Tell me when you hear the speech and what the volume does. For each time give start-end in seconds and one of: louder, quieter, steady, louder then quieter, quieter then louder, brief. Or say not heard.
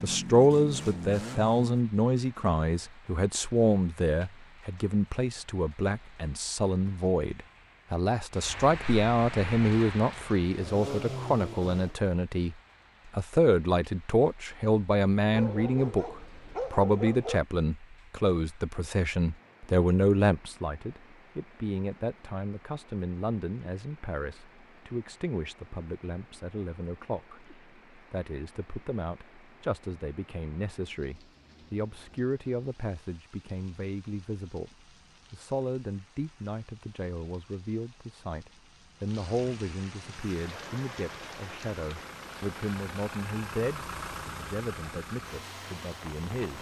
0.0-46.5 quieter.